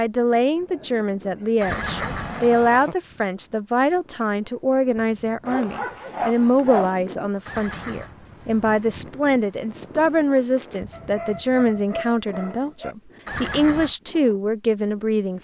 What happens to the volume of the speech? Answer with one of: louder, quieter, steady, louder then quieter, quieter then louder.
steady.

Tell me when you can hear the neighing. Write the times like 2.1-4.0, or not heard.
1.6-3.0, 7.5-8.2, 13.2-13.9.